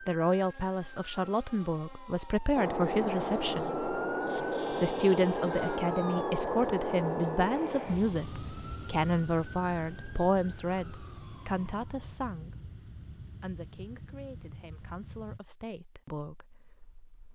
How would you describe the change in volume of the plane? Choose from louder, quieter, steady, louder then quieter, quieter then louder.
quieter.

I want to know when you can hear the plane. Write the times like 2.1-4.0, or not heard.
2.5-15.4.